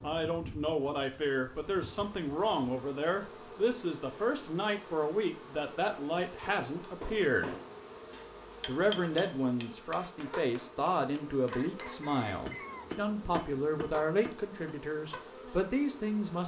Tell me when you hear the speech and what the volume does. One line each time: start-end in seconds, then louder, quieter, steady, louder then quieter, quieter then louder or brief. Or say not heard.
0.0-7.5 steady
8.7-16.4 steady.